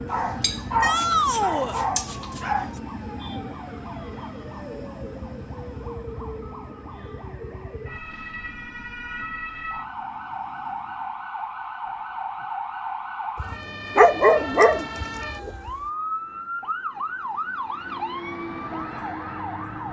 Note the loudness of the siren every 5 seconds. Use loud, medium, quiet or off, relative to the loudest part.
medium, medium, loud, loud.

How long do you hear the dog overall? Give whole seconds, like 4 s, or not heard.
5 s.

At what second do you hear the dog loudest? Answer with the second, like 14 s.
14 s.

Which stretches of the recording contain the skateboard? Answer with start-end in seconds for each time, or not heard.
not heard.